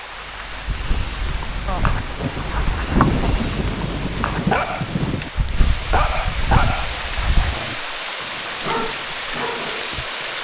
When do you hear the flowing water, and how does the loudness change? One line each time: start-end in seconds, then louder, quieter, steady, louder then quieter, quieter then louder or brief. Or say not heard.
0.0-10.3 louder.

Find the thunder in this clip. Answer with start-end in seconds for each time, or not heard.
1.6-5.3.